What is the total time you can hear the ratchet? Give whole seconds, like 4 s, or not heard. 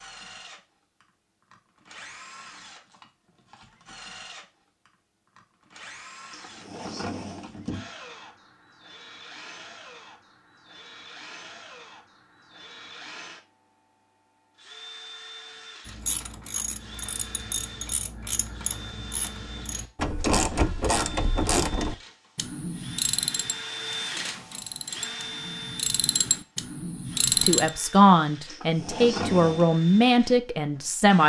12 s.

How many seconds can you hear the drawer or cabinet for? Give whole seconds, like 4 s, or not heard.
3 s.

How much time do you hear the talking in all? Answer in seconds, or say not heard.
4 s.